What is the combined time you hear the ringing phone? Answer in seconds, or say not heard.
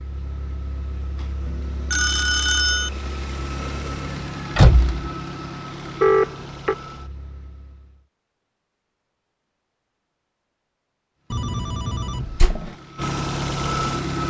3 s.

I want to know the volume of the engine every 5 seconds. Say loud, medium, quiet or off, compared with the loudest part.
medium, medium, loud.